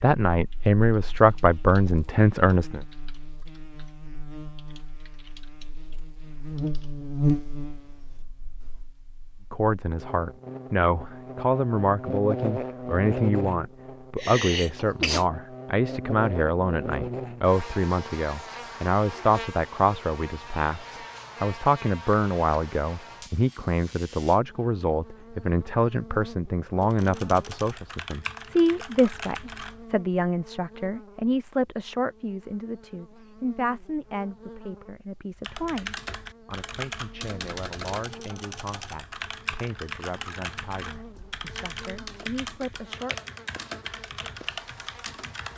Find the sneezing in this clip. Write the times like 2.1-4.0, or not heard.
14.2-15.2.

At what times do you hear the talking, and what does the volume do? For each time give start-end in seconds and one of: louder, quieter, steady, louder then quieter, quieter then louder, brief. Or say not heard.
0.0-2.8 brief
9.5-43.3 quieter.